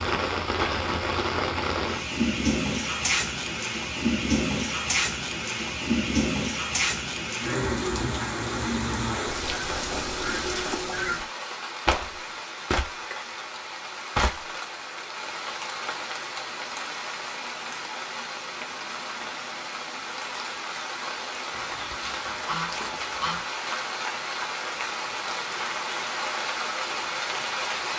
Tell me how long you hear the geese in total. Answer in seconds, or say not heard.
4 s.